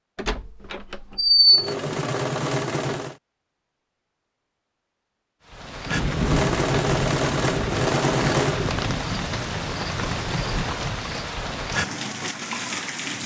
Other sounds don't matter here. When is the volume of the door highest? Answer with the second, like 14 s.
1 s.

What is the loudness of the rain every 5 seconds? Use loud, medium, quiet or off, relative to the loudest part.
off, loud, loud.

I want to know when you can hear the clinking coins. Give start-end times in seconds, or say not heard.
not heard.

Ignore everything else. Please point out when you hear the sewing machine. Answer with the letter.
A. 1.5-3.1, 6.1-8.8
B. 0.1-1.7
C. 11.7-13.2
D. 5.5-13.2
A.